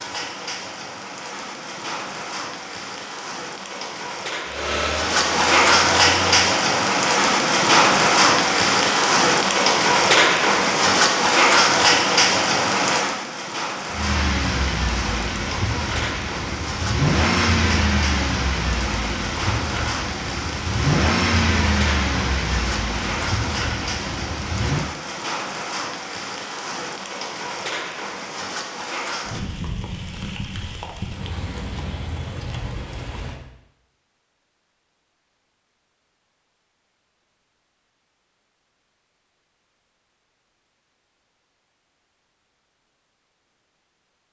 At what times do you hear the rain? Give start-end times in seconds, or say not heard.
0.0-33.4.